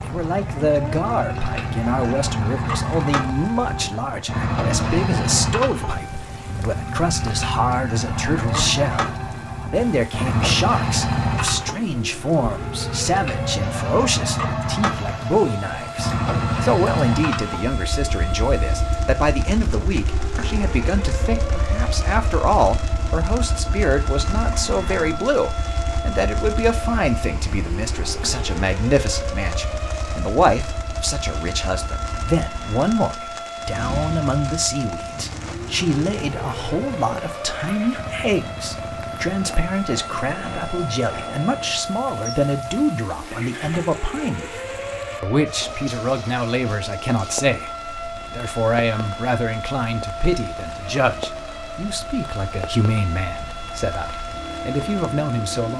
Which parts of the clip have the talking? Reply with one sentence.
The talking can be heard from 0.0 to 44.6 s and from 45.2 to 55.7 s.